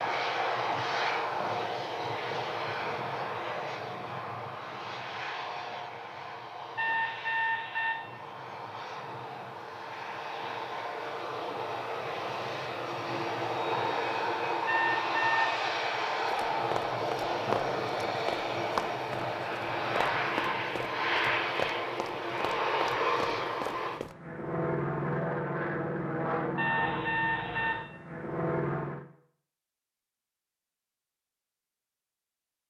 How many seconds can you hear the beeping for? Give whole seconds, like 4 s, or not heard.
3 s.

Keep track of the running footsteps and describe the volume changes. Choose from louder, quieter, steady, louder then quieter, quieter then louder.
louder then quieter.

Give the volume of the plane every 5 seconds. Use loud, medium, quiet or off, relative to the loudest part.
loud, medium, loud, loud, loud, loud, off.